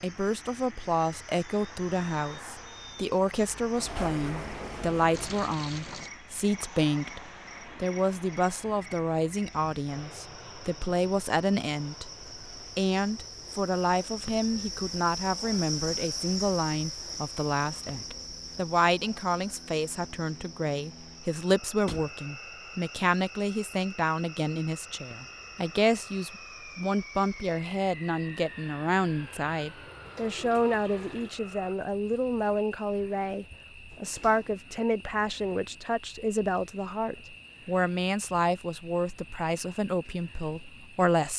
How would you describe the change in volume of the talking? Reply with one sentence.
The loudness of the talking stays about the same.